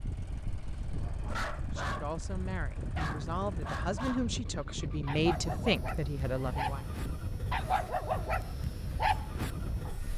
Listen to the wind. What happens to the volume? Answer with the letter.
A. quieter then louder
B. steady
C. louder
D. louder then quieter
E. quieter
B.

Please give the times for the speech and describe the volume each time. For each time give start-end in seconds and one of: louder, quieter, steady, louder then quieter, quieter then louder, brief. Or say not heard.
1.7-6.8 louder.